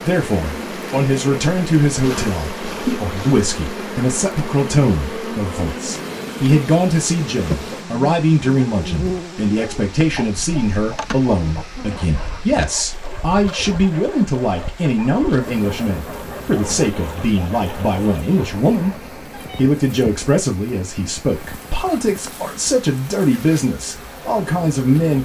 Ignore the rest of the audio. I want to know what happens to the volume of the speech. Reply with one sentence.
The volume of the speech stays about the same.